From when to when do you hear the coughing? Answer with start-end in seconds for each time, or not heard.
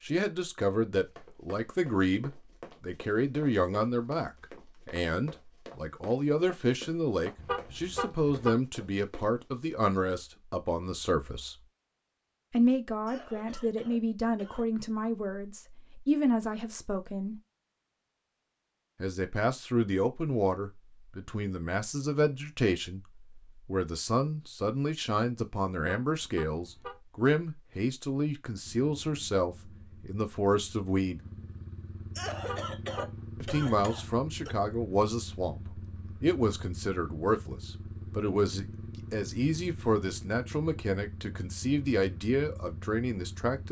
13.1-14.7, 32.1-34.5.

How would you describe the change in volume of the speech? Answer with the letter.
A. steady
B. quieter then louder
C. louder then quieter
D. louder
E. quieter
A.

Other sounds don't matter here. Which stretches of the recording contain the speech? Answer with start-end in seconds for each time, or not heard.
0.0-11.6, 12.5-17.4, 19.0-23.0, 23.6-31.2, 33.4-43.6.